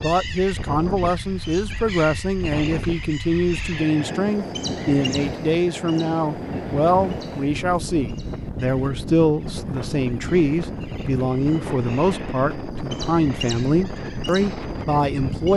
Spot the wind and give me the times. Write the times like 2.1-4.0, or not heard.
0.0-15.5.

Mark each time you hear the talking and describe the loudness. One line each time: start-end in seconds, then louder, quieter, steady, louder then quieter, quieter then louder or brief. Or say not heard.
0.0-15.5 steady.